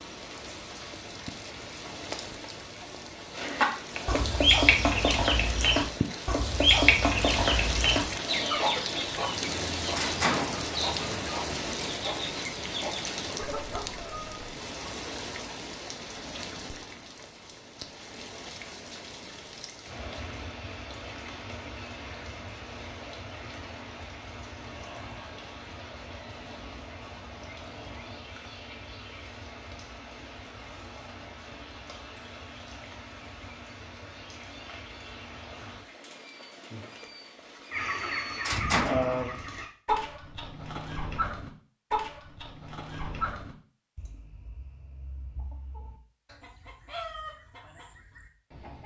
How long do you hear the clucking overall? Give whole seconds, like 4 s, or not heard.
22 s.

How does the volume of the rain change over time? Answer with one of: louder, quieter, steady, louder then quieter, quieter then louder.
quieter.